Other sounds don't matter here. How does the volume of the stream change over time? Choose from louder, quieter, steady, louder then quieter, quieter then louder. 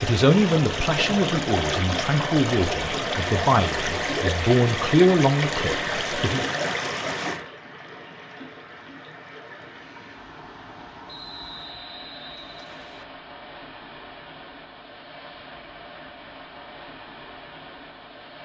quieter.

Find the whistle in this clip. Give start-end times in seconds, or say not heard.
11.1-13.1.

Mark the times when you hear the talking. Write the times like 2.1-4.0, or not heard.
0.0-6.5.